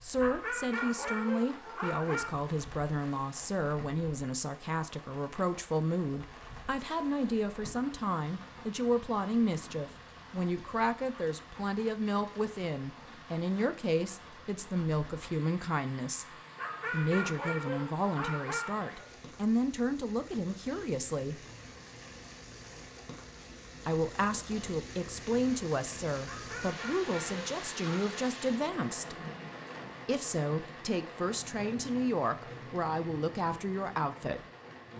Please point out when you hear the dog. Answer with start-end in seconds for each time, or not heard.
0.1-2.4, 16.6-19.1, 26.2-28.1.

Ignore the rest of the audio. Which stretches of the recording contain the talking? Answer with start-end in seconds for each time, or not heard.
0.0-21.4, 23.9-29.1, 30.1-34.4.